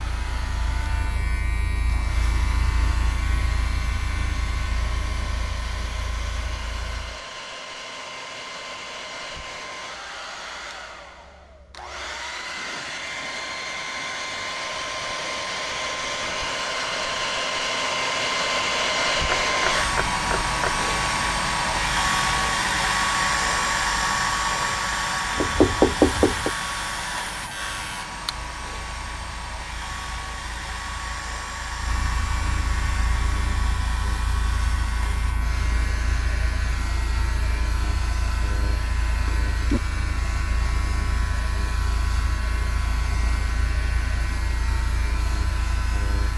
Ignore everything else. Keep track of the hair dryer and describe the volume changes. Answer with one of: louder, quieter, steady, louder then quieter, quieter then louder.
louder then quieter.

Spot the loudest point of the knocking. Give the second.
26 s.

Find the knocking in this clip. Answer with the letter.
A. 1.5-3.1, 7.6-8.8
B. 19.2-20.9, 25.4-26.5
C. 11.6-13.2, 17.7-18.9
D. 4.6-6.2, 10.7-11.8
B.